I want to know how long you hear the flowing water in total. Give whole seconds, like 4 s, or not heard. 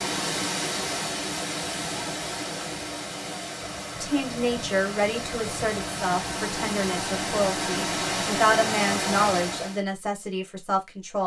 10 s.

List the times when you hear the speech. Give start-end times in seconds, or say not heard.
4.0-11.2.